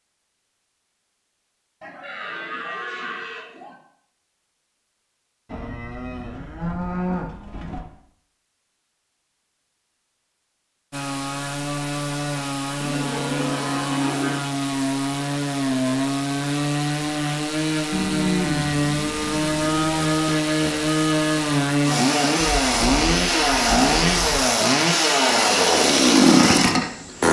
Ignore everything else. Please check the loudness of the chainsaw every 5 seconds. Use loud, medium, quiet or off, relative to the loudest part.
off, off, medium, medium, loud, loud.